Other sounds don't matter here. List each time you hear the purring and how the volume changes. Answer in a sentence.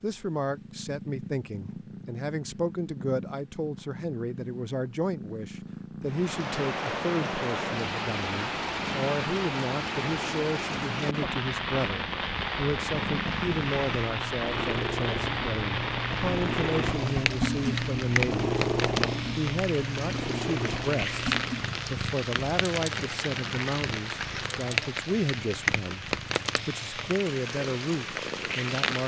You can hear the purring from 0.0 to 28.8 s, getting louder then quieter.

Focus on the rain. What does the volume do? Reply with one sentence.
The loudness of the rain stays about the same.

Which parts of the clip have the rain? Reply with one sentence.
The rain can be heard from 6.0 to 29.0 s.